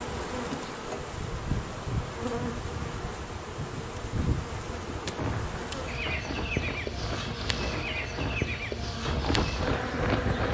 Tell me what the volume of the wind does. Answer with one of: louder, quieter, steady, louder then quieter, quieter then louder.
louder.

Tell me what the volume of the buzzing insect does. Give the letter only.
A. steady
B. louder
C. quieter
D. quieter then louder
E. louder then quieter
A.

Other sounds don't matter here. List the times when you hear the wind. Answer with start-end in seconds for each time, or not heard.
5.0-10.4.